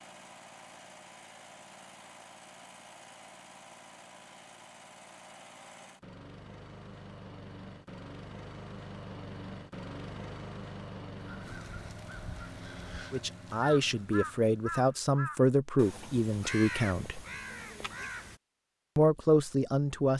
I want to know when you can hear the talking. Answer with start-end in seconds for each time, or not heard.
13.1-17.2, 18.9-20.1.